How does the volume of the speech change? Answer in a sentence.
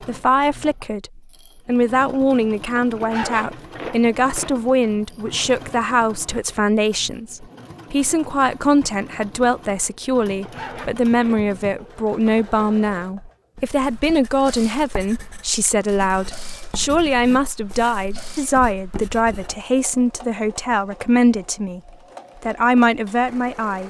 The loudness of the speech stays about the same.